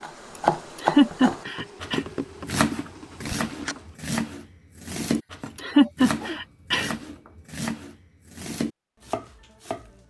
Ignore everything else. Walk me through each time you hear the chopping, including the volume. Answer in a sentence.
The chopping can be heard from 0.0 to 10.0 s, getting quieter.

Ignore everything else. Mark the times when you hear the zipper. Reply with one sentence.
You can't hear the zipper here.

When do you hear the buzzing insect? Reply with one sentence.
You can hear the buzzing insect from 0.0 to 3.9 s.